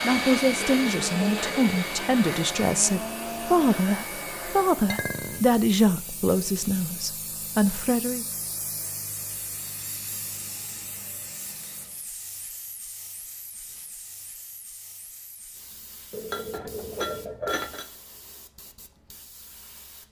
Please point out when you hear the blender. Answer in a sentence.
You can hear the blender from 0.0 to 4.8 s.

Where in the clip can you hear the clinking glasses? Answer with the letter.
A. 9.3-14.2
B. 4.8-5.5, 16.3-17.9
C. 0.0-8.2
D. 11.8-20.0
B.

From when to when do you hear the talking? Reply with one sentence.
You can hear the talking from 0.0 to 8.2 s.